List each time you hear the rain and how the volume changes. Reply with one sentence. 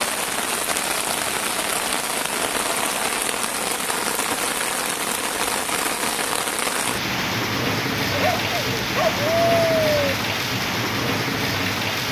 You can hear the rain from 0.0 to 12.0 s, at a steady volume.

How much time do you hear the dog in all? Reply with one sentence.
You can hear the dog for 2 seconds altogether.